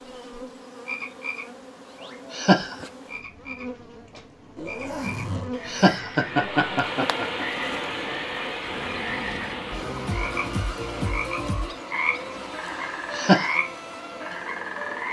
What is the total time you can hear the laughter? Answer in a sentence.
You can hear the laughter for 4 seconds altogether.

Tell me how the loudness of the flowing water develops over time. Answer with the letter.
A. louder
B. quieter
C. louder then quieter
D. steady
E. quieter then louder
B.